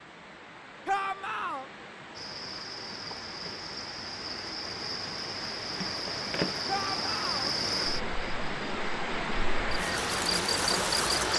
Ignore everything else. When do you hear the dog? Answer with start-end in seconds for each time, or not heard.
not heard.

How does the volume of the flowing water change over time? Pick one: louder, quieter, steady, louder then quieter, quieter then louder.
louder.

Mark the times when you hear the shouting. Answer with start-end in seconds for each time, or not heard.
0.8-1.6, 6.7-7.5.